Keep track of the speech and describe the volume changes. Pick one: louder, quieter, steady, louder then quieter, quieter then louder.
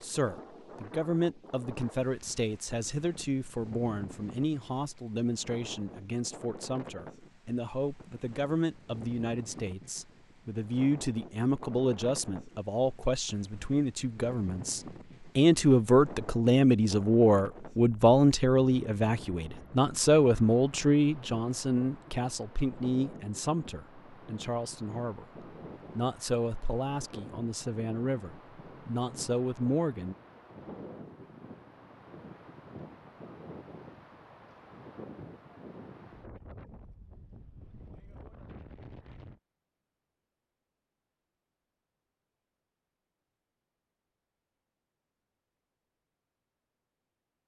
louder then quieter.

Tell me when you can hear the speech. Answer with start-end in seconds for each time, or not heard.
0.0-30.1.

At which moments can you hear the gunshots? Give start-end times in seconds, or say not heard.
not heard.